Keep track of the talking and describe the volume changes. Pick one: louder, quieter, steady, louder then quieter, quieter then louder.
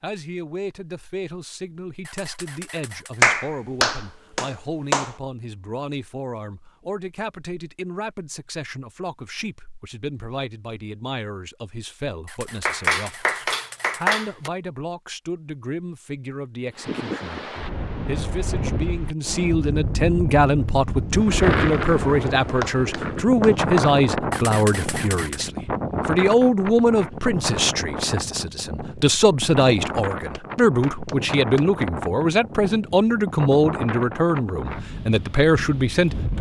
louder.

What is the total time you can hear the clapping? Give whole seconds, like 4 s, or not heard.
7 s.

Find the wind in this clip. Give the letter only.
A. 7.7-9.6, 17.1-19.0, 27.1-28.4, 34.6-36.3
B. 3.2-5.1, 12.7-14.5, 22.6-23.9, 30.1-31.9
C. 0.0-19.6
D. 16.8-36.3
D.